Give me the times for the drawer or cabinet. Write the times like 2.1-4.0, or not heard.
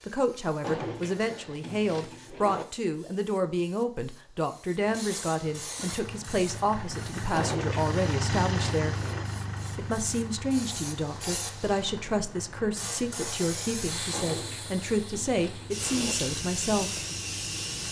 0.6-2.6, 7.3-9.2, 14.1-16.1.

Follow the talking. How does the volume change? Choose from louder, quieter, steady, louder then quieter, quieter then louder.
steady.